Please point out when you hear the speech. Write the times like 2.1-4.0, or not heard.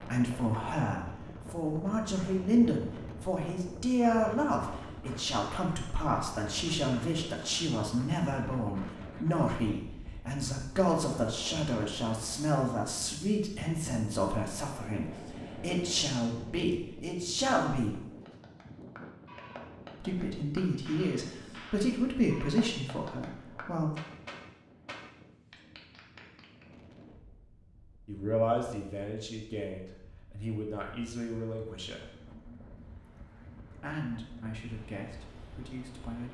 0.0-18.0, 20.0-23.9, 28.1-32.1, 33.7-36.2.